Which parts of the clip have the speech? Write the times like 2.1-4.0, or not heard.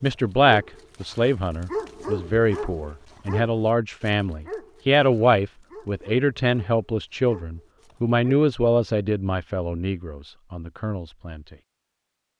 0.0-11.6.